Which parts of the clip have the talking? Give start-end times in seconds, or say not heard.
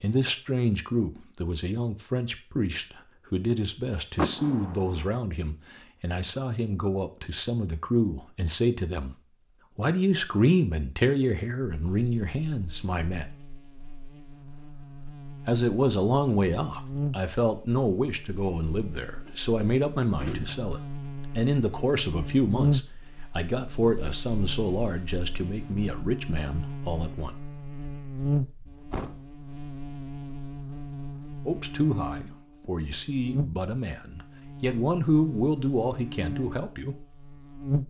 0.0-13.3, 15.4-27.4, 31.4-37.0.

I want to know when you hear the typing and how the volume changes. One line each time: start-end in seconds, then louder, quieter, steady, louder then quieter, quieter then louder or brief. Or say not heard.
not heard.